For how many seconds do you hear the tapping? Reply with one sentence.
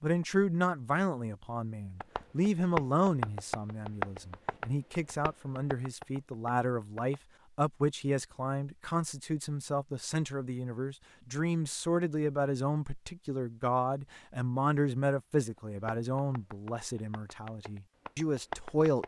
The tapping can be heard for 9 seconds in total.